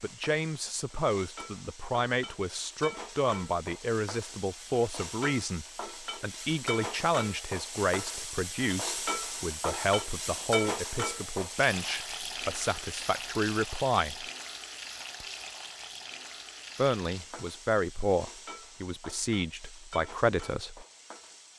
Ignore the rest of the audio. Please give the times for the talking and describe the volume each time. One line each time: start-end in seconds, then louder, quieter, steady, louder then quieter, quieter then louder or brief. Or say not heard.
0.0-14.2 steady
16.8-20.9 quieter then louder.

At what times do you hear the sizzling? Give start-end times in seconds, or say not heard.
0.0-21.5.